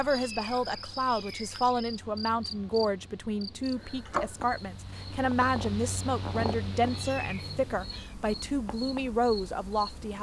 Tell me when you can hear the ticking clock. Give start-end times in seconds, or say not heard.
not heard.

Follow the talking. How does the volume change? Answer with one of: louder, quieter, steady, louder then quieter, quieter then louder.
steady.